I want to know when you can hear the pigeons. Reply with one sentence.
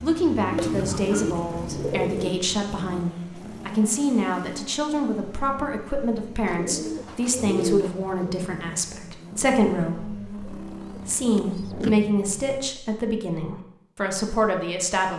You can hear the pigeons from 0.5 to 2.4 s, from 6.5 to 8.3 s and from 10.4 to 12.1 s.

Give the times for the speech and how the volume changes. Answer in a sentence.
The speech can be heard from 0.0 to 15.1 s, at a steady volume.